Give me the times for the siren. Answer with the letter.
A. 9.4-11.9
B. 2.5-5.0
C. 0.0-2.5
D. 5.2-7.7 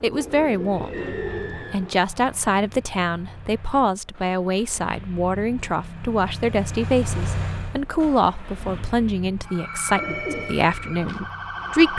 A.